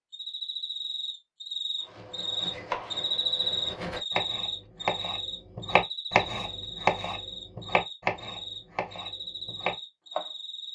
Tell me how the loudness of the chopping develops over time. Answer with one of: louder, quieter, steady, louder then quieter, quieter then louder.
louder then quieter.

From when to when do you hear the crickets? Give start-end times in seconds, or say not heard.
0.1-10.7.